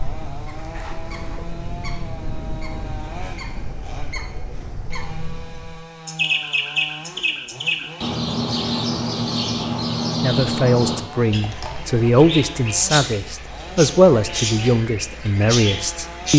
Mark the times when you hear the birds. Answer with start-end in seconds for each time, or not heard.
0.0-16.3.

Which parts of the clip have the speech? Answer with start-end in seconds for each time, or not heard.
10.2-16.3.